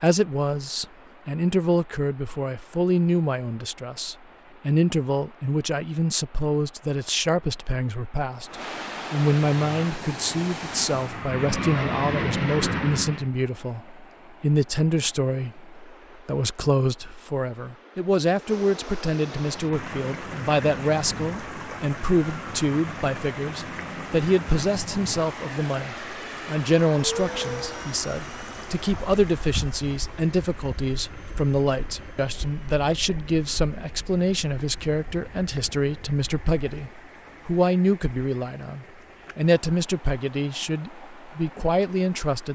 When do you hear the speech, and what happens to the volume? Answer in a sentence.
You can hear the speech from 0.0 to 42.5 s, at a steady volume.